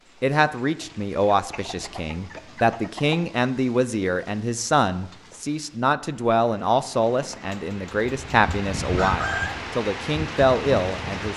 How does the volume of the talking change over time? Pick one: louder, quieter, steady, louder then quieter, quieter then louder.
steady.